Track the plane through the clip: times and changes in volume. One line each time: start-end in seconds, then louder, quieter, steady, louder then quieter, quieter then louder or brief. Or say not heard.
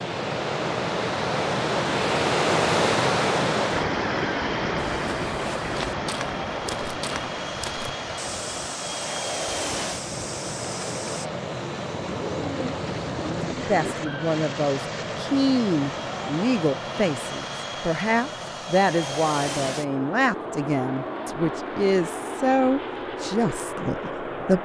0.0-24.6 steady.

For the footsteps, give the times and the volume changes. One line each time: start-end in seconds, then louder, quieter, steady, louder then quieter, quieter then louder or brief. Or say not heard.
5.0-11.3 steady.